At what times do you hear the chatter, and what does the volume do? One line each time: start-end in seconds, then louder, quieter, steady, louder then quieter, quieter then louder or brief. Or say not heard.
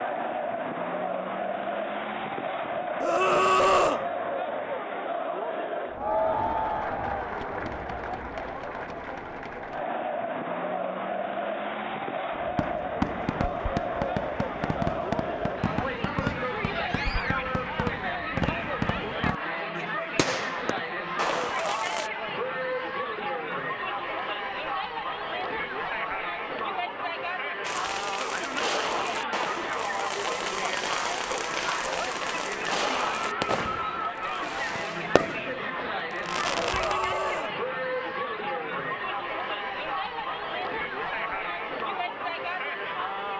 0.0-43.3 steady.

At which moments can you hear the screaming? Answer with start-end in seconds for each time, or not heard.
3.0-4.0, 16.2-17.4, 36.6-37.5.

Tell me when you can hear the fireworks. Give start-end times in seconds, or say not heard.
12.3-22.1, 27.6-37.2.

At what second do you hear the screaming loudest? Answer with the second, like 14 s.
4 s.